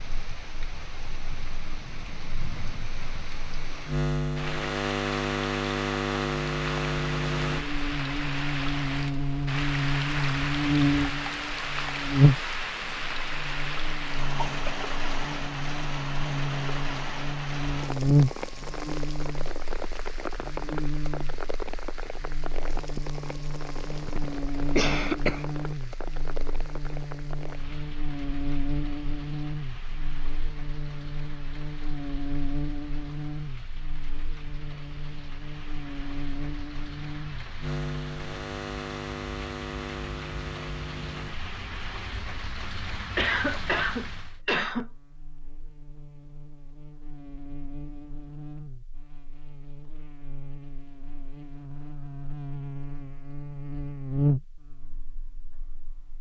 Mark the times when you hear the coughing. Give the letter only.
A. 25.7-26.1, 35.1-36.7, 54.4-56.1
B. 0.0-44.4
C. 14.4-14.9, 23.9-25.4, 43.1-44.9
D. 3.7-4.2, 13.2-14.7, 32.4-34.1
C.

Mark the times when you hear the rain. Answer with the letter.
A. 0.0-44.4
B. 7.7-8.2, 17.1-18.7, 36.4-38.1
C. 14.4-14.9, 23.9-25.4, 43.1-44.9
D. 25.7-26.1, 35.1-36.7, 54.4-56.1
A.